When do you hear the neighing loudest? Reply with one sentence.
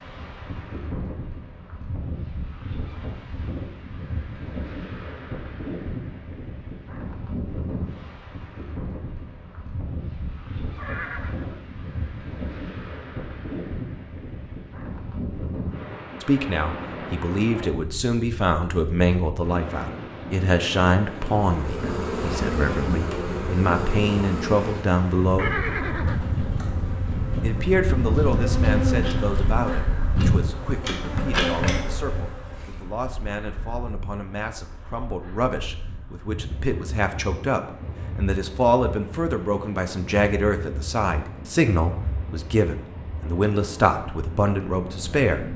The loudest moment of the neighing is at 26 seconds.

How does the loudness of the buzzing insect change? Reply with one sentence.
The volume of the buzzing insect goes down, then up.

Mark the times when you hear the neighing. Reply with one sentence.
The neighing can be heard from 10.8 to 11.7 s and from 25.4 to 26.6 s.